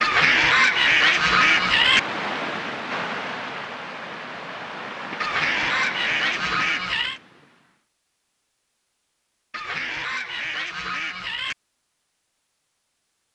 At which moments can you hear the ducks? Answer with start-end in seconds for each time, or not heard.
0.0-2.0, 5.2-7.2, 9.5-11.6.